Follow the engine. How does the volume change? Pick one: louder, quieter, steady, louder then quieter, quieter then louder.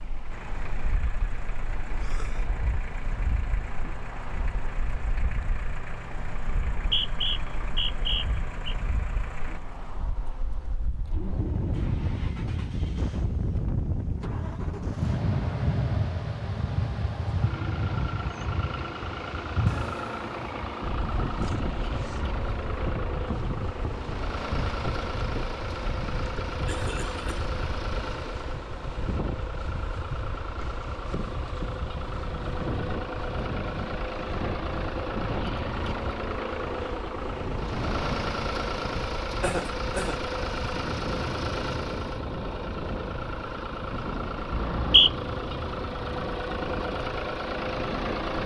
louder.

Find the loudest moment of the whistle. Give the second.
45 s.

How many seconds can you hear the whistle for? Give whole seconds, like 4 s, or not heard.
3 s.